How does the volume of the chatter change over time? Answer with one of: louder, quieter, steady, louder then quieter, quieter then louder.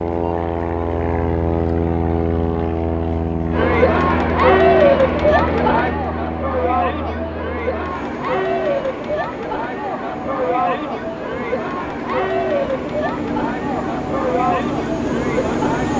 quieter.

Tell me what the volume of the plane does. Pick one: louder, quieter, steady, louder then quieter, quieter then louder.
quieter then louder.